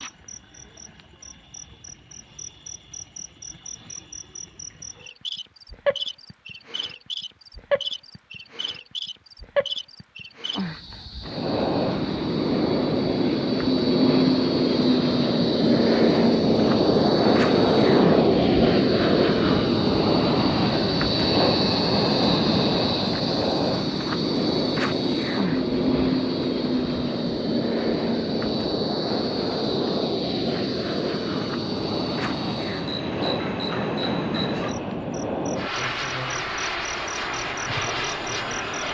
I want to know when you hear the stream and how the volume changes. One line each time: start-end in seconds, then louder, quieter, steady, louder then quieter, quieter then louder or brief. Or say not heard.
not heard.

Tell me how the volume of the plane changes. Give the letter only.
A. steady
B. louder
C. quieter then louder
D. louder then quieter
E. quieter
E.